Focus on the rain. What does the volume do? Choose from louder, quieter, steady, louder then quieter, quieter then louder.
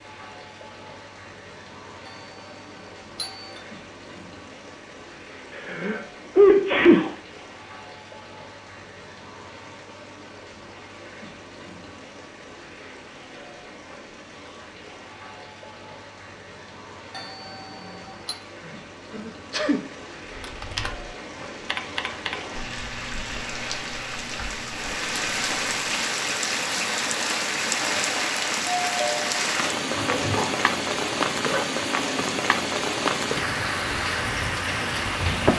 louder.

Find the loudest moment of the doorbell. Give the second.
29 s.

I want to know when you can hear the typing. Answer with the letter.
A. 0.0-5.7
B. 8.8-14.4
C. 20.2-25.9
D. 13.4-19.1
C.